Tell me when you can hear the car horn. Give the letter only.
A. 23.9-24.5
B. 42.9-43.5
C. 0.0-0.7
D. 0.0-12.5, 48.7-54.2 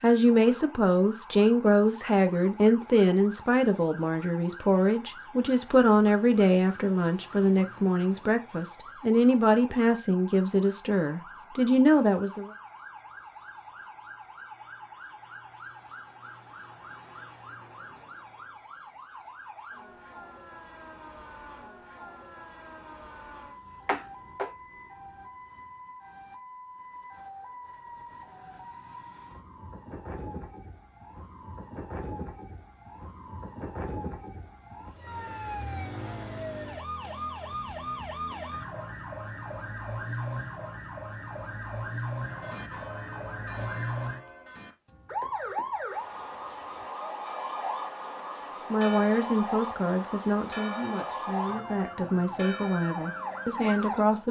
A.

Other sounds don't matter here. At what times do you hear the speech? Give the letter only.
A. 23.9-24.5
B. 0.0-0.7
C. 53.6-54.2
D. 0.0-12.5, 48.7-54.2
D.